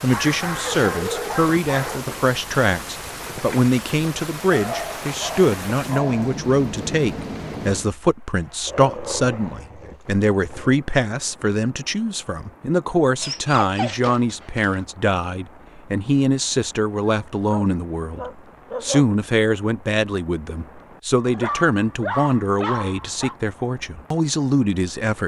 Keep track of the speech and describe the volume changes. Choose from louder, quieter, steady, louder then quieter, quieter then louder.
steady.